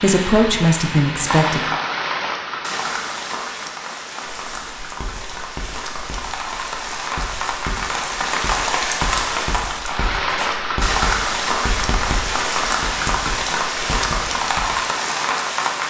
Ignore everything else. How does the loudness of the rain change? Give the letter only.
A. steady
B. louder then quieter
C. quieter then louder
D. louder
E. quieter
C.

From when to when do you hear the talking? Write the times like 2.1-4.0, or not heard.
0.0-1.6.